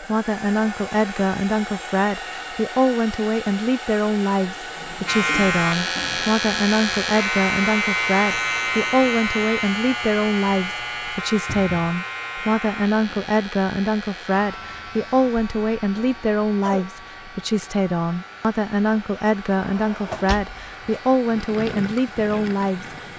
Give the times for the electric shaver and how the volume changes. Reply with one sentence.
You can hear the electric shaver from 5.0 to 22.9 s, getting quieter.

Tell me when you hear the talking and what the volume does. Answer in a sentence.
You can hear the talking from 0.0 to 22.9 s, at a steady volume.